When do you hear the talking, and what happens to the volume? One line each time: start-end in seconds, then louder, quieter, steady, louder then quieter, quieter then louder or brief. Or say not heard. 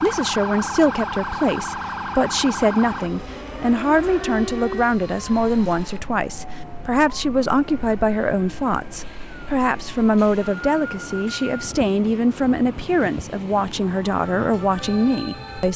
0.0-15.7 steady.